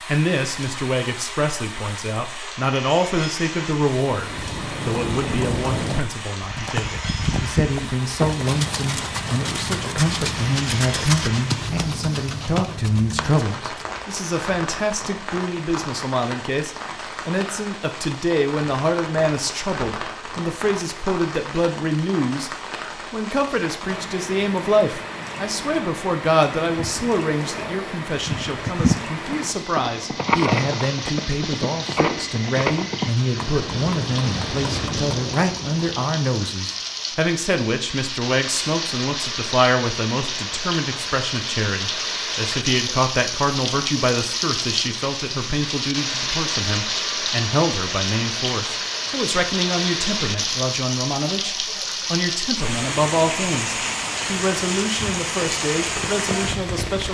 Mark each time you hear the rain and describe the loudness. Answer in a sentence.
You can hear the rain from 0.0 to 57.0 s, getting louder.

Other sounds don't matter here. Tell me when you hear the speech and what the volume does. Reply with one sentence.
You can hear the speech from 0.1 to 57.0 s, at a steady volume.